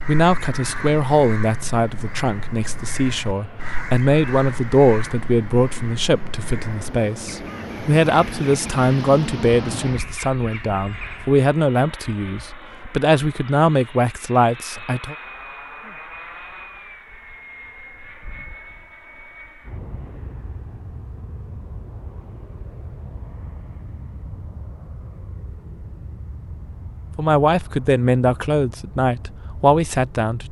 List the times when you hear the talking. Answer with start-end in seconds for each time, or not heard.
0.0-15.2, 27.1-30.4.